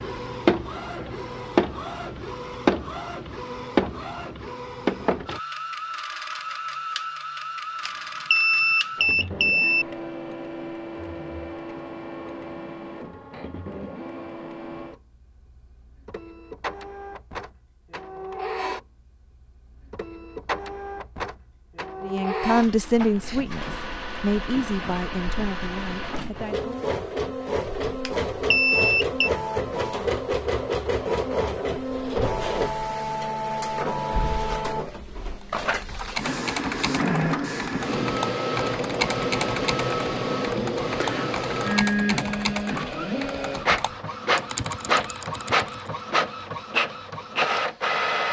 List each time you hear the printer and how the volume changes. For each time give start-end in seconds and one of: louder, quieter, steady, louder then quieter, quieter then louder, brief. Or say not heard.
0.0-48.2 quieter then louder.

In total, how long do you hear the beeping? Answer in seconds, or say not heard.
3 s.